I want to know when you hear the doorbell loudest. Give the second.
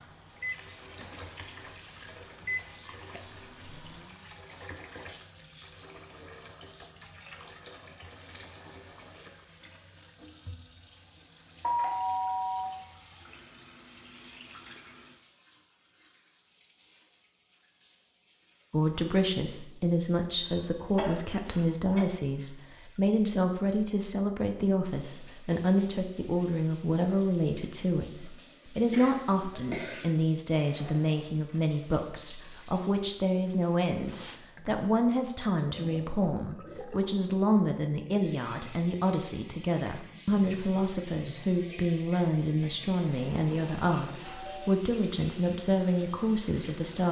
12 s.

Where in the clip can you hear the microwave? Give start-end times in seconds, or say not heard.
0.0-4.2.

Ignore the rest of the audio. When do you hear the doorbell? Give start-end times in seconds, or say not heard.
11.6-12.7, 43.0-44.8.